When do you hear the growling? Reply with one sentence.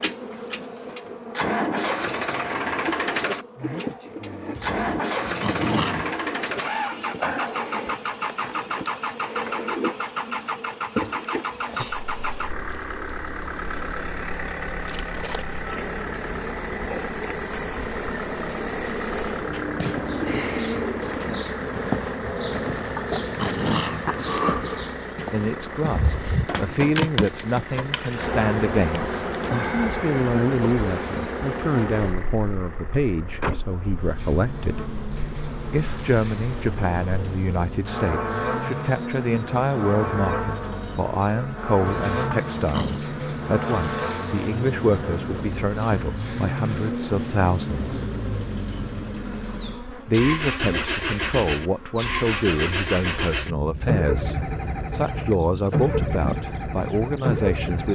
You can hear the growling from 4.5 to 6.2 s, from 22.7 to 24.1 s and from 41.9 to 43.0 s.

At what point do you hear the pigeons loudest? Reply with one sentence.
The volume of the pigeons peaks at 21 seconds.